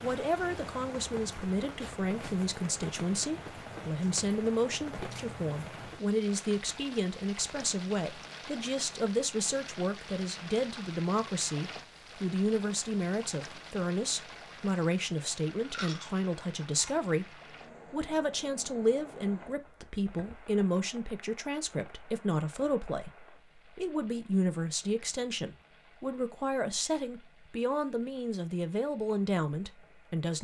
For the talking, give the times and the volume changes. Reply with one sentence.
You can hear the talking from 0.0 to 30.3 s, at a steady volume.